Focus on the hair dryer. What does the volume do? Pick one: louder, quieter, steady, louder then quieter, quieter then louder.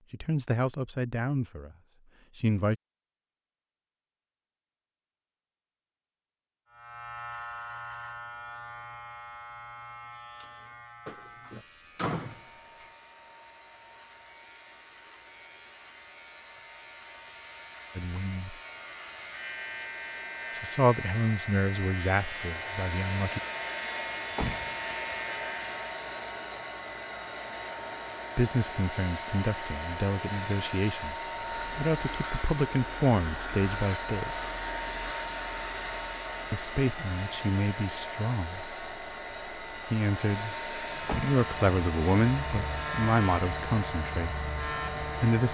louder.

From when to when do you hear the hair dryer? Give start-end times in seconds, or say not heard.
12.2-45.4.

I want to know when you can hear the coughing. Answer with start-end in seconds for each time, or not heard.
not heard.